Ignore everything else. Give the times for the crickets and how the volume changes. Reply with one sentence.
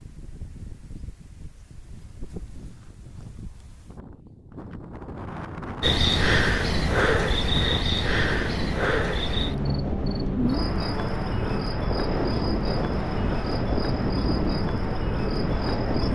You can hear the crickets from 5.8 to 16.0 s, getting quieter.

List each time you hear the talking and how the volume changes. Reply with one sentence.
You can't hear the talking here.